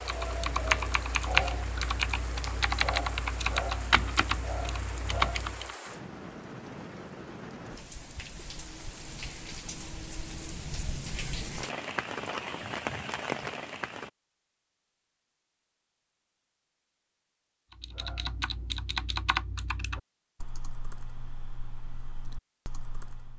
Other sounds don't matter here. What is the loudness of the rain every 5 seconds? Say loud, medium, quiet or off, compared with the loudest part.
medium, medium, loud, off, off.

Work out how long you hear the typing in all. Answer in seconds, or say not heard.
11 s.